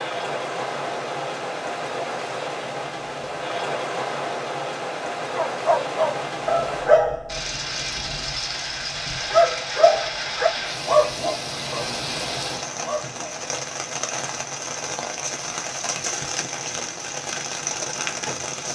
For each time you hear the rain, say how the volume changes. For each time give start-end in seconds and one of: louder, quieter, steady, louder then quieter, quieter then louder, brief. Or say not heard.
0.0-18.7 steady.